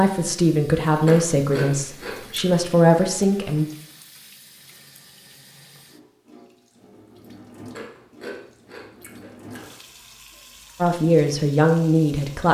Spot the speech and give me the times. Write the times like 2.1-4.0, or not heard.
0.0-3.6, 10.8-12.4.